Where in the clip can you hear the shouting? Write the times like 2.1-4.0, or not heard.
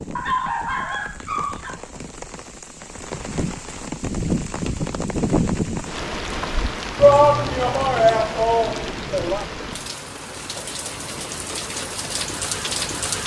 7.0-9.4.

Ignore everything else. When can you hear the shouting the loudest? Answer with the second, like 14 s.
7 s.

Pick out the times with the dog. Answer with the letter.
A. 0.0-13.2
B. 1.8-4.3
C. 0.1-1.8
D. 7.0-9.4
C.